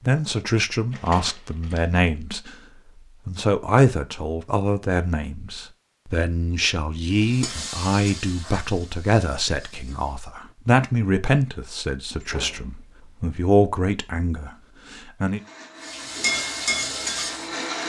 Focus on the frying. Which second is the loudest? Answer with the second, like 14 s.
17 s.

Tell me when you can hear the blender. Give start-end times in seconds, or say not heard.
15.3-17.8.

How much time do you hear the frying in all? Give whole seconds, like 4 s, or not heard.
5 s.